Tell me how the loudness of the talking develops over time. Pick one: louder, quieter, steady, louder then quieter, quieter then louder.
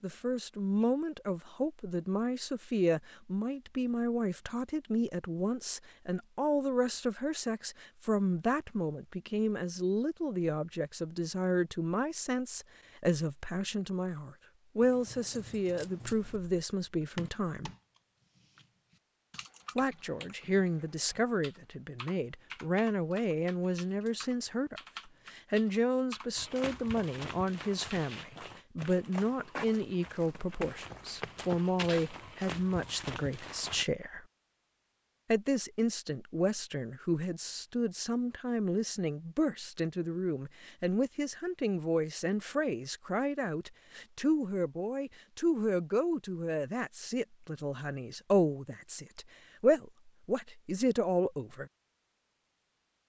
steady.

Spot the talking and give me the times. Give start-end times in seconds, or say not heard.
0.0-17.7, 19.8-34.2, 35.3-51.7.